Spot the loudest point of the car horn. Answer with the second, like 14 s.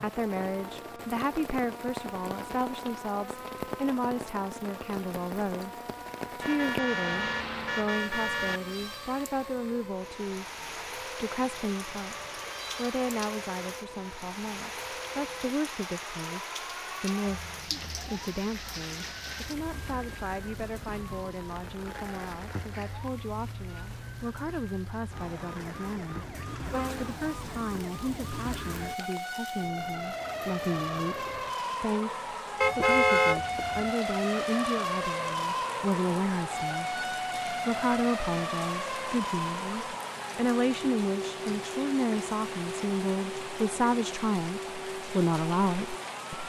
33 s.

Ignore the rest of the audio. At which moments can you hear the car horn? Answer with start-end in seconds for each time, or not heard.
6.3-8.6, 26.7-27.8, 32.6-33.9.